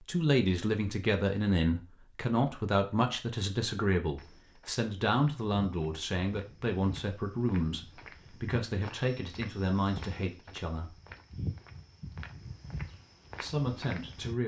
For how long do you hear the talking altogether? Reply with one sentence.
You can hear the talking for 12 seconds altogether.